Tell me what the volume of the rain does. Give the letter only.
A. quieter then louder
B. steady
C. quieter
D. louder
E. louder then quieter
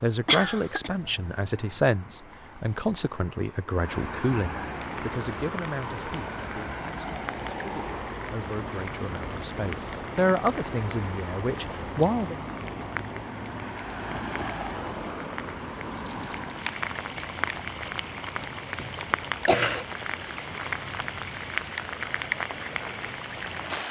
D.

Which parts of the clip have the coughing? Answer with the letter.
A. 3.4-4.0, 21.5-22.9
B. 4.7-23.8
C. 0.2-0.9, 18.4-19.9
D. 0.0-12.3
C.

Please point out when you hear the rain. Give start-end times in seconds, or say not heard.
4.7-23.8.